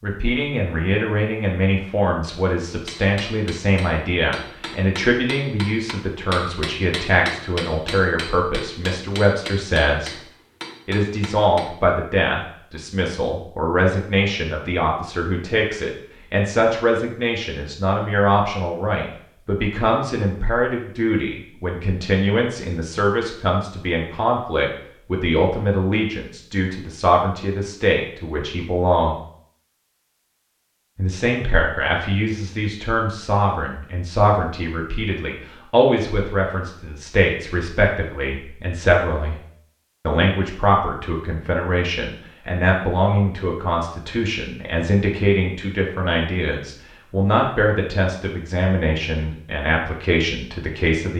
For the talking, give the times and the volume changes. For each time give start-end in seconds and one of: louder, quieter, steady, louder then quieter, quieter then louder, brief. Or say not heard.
0.0-10.2 steady
10.8-29.2 steady
30.9-39.4 steady
40.0-51.1 steady.